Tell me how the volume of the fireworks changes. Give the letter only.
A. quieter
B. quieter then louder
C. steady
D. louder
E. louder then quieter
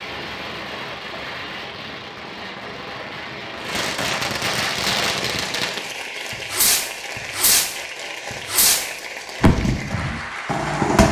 D.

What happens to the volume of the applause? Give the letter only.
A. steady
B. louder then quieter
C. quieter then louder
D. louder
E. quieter
A.